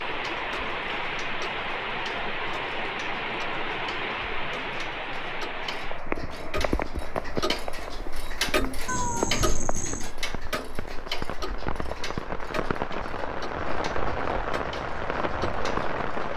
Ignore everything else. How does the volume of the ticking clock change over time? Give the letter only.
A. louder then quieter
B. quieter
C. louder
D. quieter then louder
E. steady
A.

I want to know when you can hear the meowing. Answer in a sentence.
The meowing can be heard from 8.8 to 10.1 s.